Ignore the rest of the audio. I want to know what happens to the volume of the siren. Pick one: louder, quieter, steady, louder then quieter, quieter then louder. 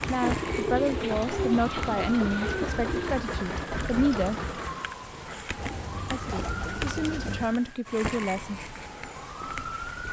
steady.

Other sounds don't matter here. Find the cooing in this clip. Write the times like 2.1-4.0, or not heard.
0.2-3.2, 5.5-7.5.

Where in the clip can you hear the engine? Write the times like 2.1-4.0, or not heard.
0.0-5.0.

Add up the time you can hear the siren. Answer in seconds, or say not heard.
10 s.